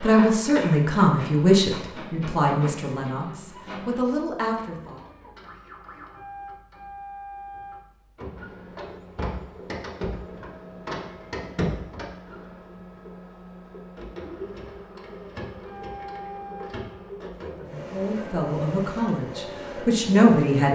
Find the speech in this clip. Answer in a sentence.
The speech can be heard from 0.0 to 5.0 s and from 17.4 to 20.6 s.